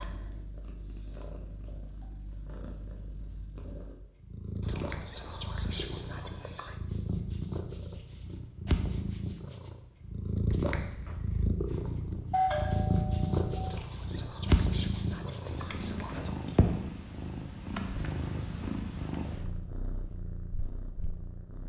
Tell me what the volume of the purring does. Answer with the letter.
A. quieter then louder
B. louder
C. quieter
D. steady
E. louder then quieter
E.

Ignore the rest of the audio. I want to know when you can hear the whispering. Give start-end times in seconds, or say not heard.
4.6-6.8, 13.6-16.4.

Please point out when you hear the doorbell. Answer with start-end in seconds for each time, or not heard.
12.3-13.6.